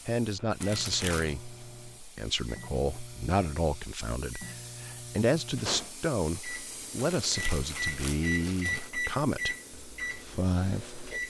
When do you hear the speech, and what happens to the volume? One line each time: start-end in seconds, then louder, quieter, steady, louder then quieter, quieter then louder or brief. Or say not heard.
0.1-11.2 steady.